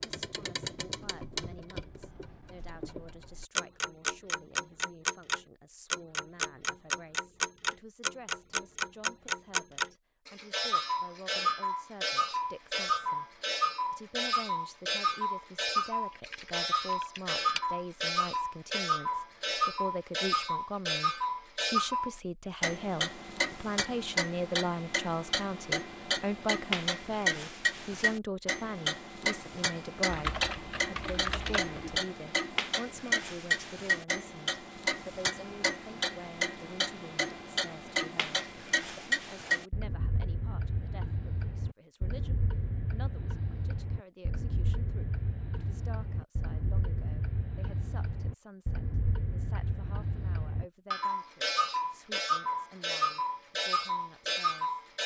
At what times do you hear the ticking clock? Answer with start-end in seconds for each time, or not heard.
0.0-55.0.